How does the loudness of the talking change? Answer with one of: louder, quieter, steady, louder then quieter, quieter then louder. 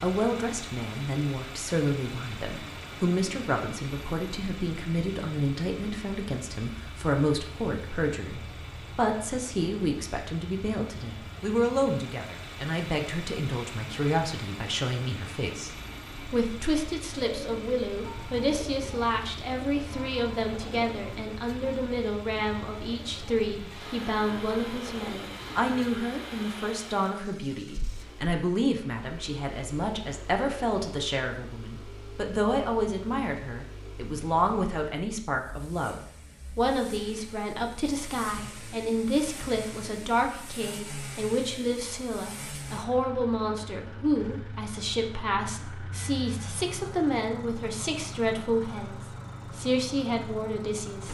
steady.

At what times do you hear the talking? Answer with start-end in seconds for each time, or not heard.
0.0-51.0.